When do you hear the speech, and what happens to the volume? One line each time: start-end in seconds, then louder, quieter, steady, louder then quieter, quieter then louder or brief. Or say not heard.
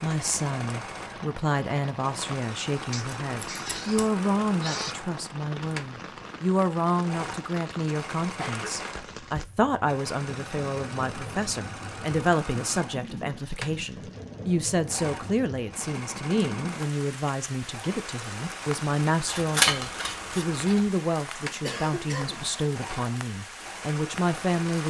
0.0-24.8 steady.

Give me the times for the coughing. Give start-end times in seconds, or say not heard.
2.9-5.0, 8.4-9.0, 21.6-22.5.